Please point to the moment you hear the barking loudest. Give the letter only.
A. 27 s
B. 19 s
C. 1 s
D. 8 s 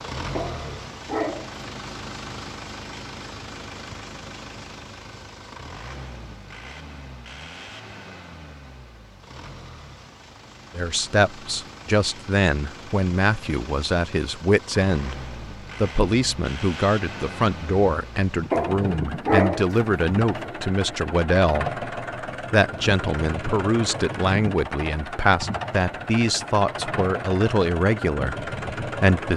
B.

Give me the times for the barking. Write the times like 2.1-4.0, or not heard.
0.3-1.6, 18.5-20.6.